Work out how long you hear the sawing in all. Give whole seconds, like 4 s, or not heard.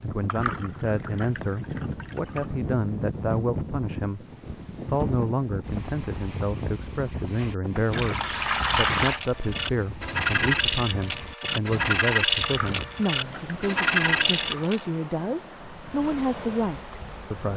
6 s.